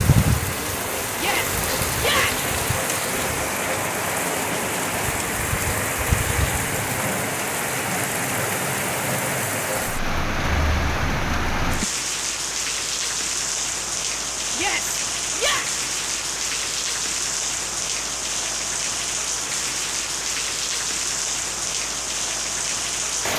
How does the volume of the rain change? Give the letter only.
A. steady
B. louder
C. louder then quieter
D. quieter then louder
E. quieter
A.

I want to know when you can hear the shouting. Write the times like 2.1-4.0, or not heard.
1.1-2.5, 14.5-15.7.